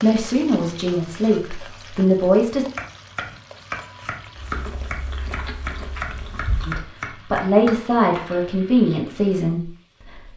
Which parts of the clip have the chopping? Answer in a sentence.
The chopping can be heard from 2.5 to 8.3 s.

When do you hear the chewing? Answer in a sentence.
You can hear the chewing from 4.3 to 6.8 s.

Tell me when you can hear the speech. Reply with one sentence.
The speech can be heard from 0.0 to 2.6 s and from 6.7 to 10.3 s.